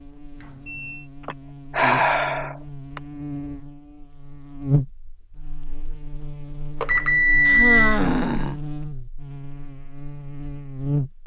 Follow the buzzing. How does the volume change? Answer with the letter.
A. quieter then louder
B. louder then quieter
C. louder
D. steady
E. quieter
B.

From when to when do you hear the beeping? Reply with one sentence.
You can hear the beeping from 0.4 to 1.1 s and from 6.8 to 8.0 s.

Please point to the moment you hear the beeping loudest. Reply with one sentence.
The volume of the beeping peaks at 8 seconds.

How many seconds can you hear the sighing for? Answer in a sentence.
The sighing can be heard for 3 seconds in total.